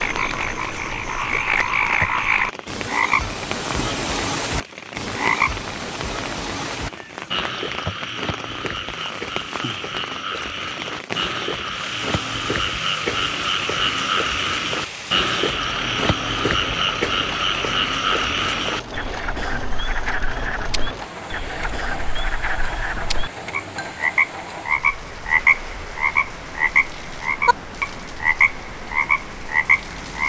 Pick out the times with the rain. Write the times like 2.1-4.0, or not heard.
0.0-30.2.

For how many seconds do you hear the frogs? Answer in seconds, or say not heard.
30 s.